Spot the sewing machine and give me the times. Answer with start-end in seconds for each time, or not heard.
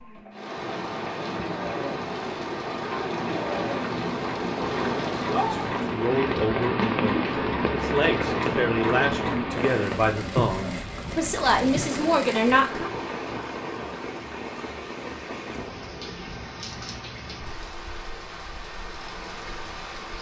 0.0-12.7.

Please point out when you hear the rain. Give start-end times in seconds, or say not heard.
0.0-20.1.